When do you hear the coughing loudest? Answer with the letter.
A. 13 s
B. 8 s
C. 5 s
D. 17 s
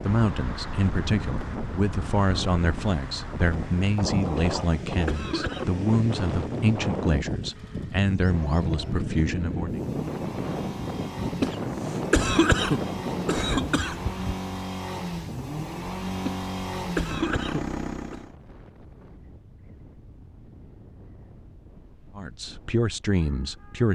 A.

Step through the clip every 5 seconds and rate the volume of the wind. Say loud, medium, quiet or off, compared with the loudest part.
loud, loud, loud, quiet, quiet.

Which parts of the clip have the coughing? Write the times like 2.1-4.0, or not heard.
4.3-5.8, 11.4-13.9, 16.2-18.2.